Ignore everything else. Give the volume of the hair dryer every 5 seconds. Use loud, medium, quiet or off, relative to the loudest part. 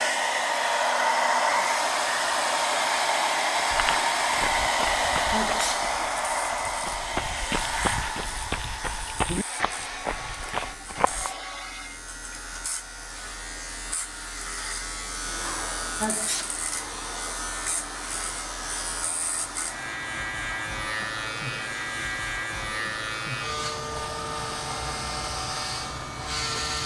loud, medium, quiet, quiet, quiet, quiet.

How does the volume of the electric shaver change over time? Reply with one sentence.
The volume of the electric shaver goes up.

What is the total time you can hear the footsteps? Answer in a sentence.
You can hear the footsteps for 8 seconds altogether.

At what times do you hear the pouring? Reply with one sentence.
You can't hear the pouring here.